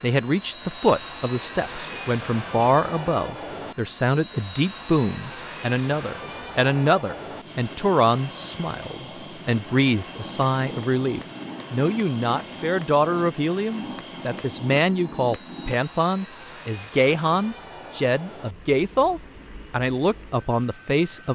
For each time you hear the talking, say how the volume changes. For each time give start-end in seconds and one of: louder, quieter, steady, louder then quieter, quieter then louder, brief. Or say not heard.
0.0-21.3 steady.